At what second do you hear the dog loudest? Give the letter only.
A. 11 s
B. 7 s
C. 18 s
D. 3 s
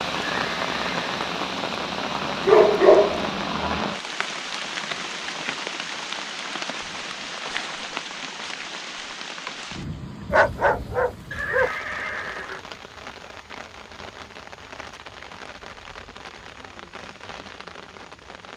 D.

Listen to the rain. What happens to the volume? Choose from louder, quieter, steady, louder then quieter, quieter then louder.
quieter.